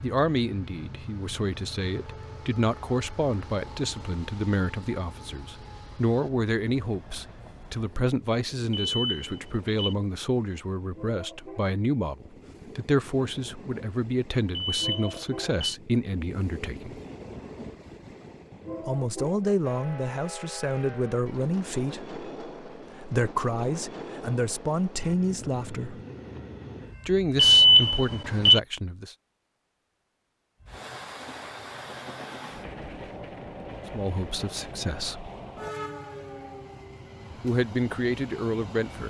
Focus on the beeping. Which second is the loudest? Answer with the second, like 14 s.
28 s.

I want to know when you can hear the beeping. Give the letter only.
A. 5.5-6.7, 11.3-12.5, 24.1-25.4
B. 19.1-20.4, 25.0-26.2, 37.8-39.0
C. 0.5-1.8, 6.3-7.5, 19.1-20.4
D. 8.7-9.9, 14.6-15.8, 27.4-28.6
D.